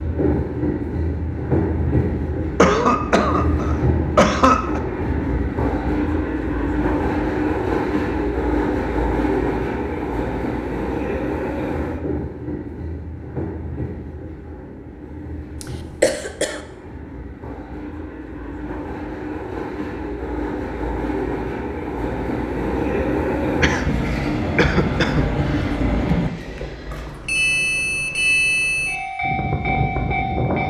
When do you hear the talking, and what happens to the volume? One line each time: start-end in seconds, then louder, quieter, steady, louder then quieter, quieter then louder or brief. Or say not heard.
not heard.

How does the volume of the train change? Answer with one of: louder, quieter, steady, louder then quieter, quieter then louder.
quieter then louder.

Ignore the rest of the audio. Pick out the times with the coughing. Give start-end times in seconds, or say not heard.
2.5-4.8, 15.6-16.6, 23.6-25.8.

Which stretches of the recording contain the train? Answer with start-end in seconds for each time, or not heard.
0.0-30.6.